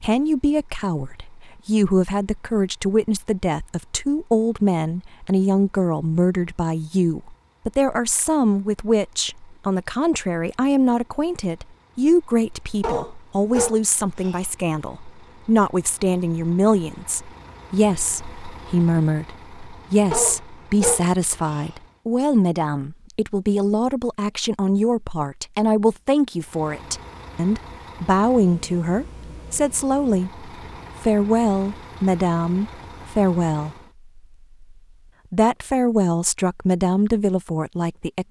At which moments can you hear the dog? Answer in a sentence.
The dog can be heard from 12.8 to 14.4 s and from 20.1 to 21.6 s.